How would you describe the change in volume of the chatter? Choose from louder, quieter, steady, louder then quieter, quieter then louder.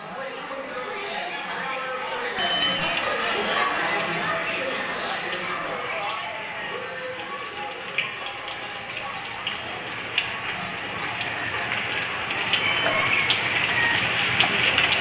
quieter.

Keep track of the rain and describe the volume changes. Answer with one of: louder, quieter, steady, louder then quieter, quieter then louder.
louder.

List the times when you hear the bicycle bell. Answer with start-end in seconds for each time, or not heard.
2.4-3.0, 12.6-13.0.